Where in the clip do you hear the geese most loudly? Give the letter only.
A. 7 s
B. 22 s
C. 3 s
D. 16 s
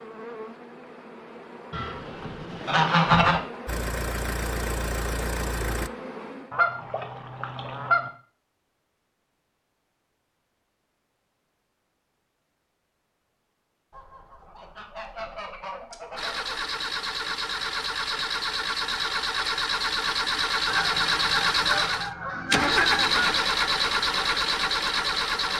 C.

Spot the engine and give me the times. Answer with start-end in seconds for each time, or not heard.
3.6-5.9, 16.1-25.5.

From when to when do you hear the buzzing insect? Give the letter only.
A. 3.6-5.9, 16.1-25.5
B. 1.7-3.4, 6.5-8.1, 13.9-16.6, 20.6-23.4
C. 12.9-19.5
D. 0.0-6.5
D.